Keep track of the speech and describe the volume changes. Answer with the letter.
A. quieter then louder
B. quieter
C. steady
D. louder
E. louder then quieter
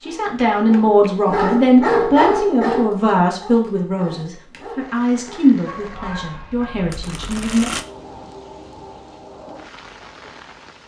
B.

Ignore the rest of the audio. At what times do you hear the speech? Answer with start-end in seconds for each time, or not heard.
0.0-7.7.